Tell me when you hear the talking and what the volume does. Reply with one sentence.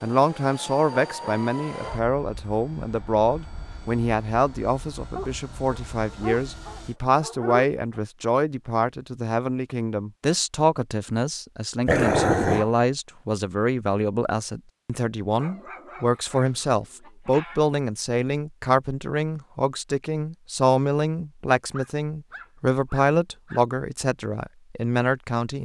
The talking can be heard from 0.0 to 25.6 s, at a steady volume.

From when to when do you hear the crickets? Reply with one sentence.
The crickets can't be heard in this clip.